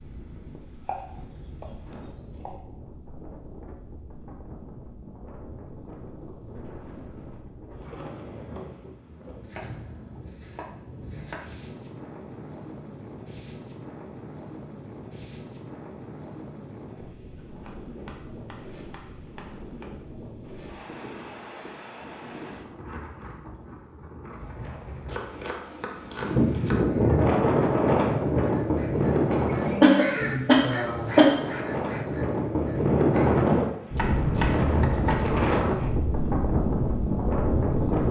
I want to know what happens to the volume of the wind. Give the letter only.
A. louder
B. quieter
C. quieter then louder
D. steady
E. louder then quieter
A.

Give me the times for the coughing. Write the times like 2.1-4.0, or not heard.
29.3-31.4.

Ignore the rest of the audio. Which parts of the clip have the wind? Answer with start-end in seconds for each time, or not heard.
0.0-38.0.